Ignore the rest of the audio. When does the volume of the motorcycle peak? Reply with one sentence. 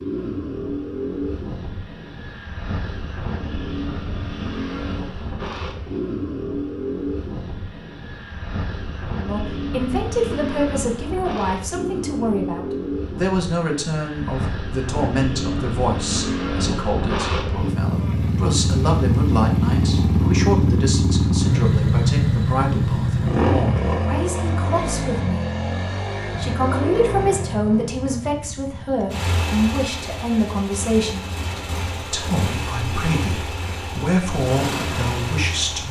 The volume of the motorcycle peaks at 22 seconds.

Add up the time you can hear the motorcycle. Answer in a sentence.
The motorcycle can be heard for 36 seconds in total.